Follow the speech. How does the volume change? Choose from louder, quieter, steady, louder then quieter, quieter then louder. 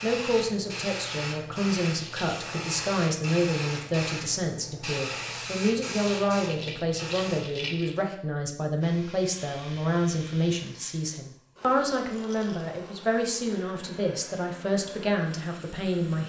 steady.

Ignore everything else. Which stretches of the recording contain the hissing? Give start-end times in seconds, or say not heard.
0.0-7.8.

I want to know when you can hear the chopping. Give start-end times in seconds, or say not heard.
not heard.